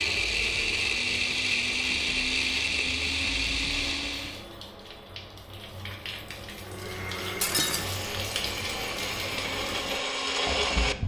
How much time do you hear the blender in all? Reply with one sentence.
The blender can be heard for 9 seconds in total.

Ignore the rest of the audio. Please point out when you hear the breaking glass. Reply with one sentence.
The breaking glass can be heard from 7.4 to 8.1 s.